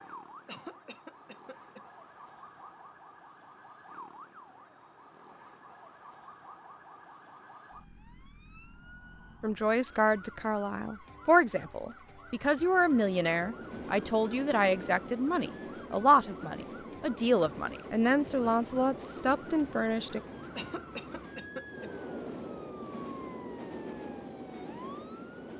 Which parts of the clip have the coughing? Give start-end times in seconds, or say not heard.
0.5-1.8, 20.6-21.9.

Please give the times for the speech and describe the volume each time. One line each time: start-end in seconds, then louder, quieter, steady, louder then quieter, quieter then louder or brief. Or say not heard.
9.4-20.2 steady.